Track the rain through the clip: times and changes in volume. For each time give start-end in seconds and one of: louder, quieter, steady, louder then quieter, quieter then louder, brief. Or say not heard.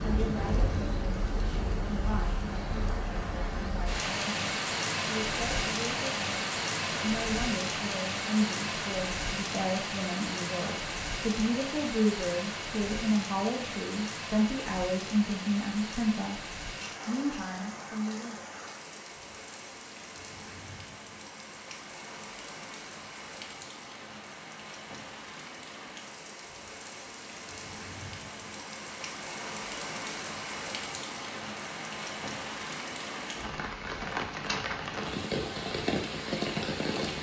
0.0-37.1 quieter then louder.